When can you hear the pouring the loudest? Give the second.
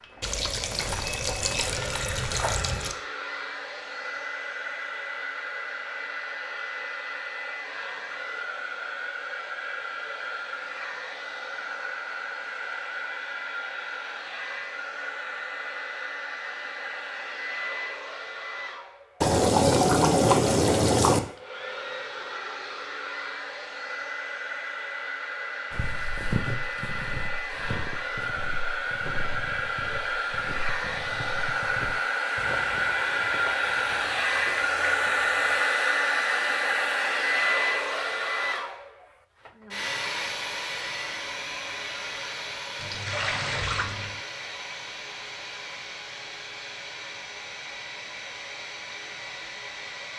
20 s.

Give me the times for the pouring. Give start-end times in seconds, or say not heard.
0.2-3.0, 19.2-21.2, 42.8-44.2.